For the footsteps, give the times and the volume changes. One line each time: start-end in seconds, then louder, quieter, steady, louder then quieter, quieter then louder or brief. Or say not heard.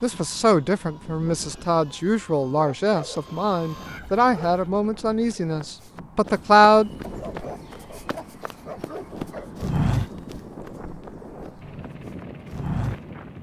5.6-13.0 louder then quieter.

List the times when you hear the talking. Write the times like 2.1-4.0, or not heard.
0.0-6.9.